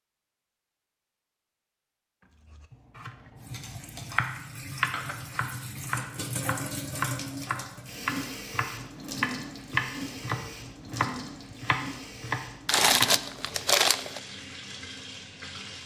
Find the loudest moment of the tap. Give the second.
7 s.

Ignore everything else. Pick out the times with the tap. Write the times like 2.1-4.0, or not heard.
3.4-15.8.